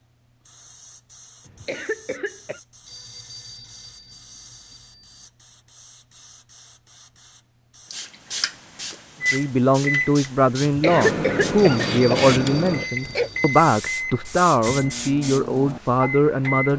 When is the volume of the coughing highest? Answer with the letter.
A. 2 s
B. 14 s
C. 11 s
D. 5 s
C.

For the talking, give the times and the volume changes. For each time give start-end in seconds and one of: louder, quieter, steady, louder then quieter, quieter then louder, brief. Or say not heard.
9.3-16.7 steady.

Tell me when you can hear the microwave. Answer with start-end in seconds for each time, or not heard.
9.2-16.7.